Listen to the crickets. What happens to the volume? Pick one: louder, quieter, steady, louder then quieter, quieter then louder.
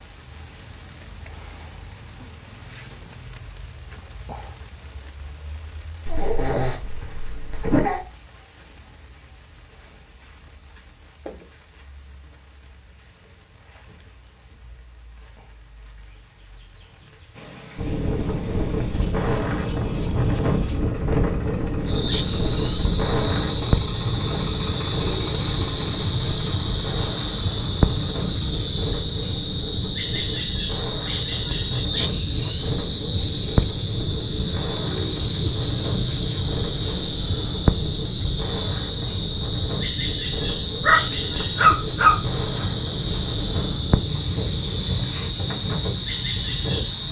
quieter then louder.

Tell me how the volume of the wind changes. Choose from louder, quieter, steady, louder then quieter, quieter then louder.
quieter.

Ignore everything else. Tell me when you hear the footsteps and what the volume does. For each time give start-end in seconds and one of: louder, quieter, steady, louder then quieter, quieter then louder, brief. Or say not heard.
not heard.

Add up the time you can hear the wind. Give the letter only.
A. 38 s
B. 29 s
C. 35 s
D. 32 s
B.